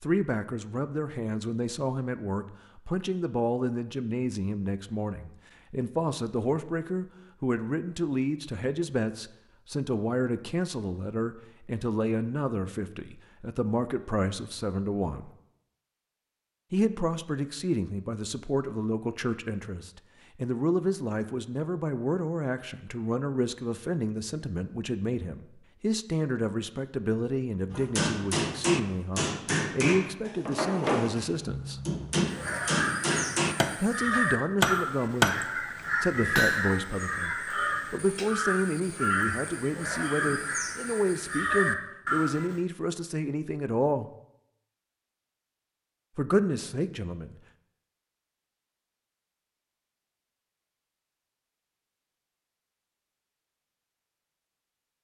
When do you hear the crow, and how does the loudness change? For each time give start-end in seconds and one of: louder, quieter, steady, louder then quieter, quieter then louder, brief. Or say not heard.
32.2-42.6 steady.